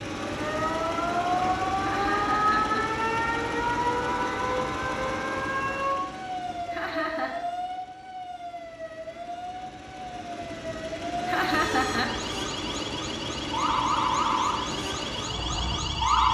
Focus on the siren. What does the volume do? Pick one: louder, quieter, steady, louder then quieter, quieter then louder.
quieter then louder.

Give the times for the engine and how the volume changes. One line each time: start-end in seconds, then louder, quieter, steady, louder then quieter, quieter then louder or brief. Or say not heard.
0.0-16.2 quieter then louder.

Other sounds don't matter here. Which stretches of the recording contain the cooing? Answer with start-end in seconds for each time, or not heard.
not heard.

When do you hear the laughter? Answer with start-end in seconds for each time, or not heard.
1.8-3.0, 6.7-7.3, 11.2-12.2.